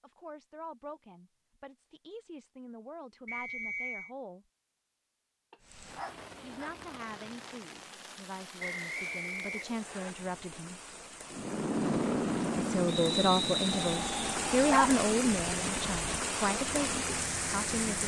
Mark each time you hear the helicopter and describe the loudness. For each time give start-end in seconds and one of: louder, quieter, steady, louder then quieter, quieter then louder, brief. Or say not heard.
11.3-18.0 quieter.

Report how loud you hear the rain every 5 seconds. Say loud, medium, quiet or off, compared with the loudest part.
off, quiet, medium, loud.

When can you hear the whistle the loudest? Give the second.
13 s.